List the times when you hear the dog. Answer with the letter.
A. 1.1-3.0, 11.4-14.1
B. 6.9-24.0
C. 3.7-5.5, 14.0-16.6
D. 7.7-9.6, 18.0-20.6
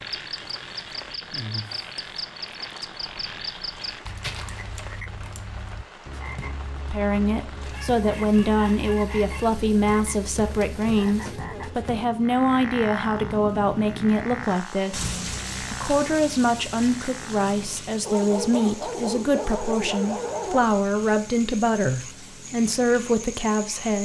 D.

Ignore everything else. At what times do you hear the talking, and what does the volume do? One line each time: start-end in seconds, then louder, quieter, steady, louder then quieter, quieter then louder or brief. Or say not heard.
6.9-24.0 steady.